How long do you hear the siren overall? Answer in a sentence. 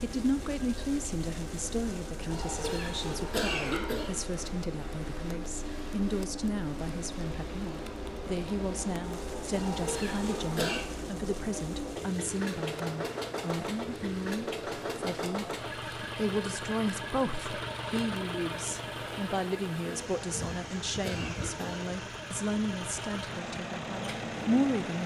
The siren can't be heard in this clip.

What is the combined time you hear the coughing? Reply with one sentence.
The coughing can be heard for 5 seconds in total.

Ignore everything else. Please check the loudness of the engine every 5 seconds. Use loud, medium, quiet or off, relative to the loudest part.
medium, loud, loud, loud, loud.